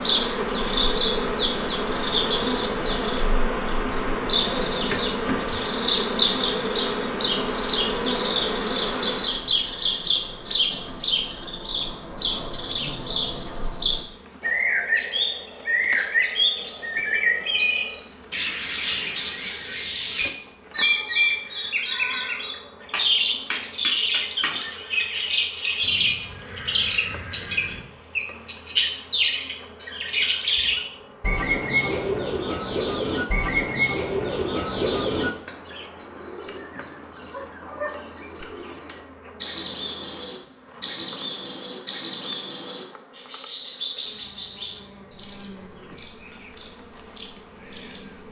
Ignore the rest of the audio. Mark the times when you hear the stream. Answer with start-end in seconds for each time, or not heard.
not heard.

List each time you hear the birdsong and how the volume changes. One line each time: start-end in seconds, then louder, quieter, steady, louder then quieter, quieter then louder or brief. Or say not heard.
0.0-48.1 steady.